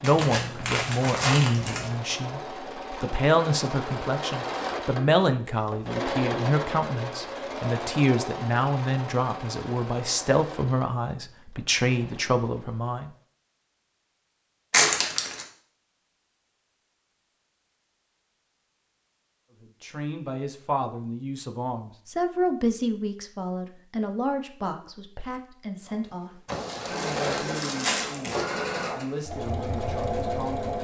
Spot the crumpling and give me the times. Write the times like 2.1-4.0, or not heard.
0.0-1.9, 14.7-15.4, 26.4-28.4.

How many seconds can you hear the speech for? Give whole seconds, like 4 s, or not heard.
24 s.